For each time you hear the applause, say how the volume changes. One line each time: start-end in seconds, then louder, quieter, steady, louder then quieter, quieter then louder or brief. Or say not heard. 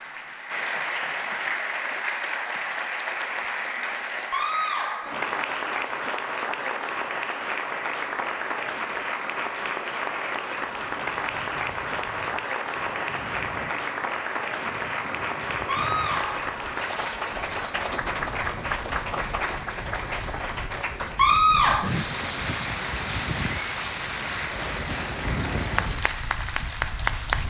0.0-27.4 steady.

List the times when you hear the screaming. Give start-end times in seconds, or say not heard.
4.3-5.2, 15.7-16.6, 21.1-21.9.